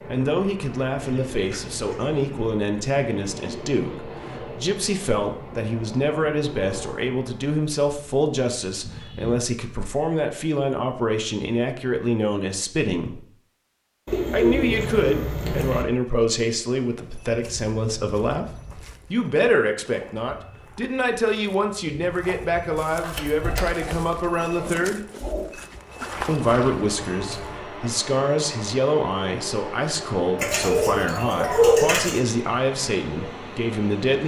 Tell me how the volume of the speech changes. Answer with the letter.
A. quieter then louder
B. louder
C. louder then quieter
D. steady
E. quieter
D.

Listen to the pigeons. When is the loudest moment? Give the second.
32 s.